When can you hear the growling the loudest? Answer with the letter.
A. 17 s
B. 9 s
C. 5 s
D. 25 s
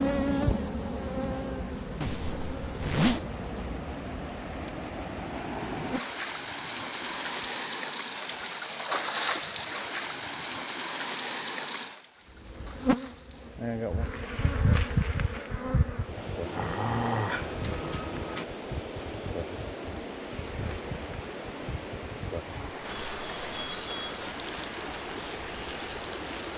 A.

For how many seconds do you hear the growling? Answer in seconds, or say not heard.
2 s.